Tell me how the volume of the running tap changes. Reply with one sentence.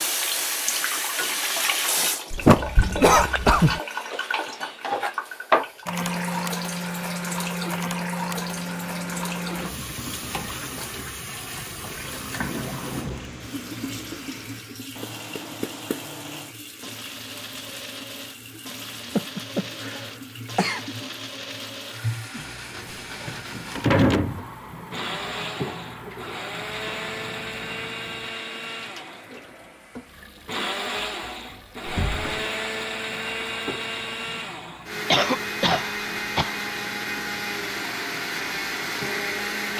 The volume of the running tap goes down.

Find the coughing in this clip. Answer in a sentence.
The coughing can be heard from 2.3 to 3.8 s, from 19.1 to 20.8 s and from 35.1 to 36.5 s.